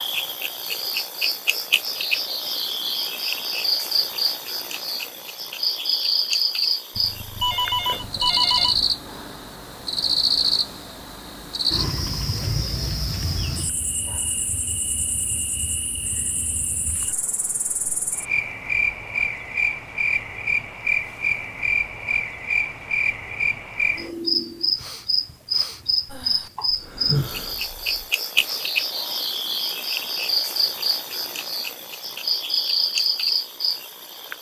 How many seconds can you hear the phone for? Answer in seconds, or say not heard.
2 s.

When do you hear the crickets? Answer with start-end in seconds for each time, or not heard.
0.0-34.3.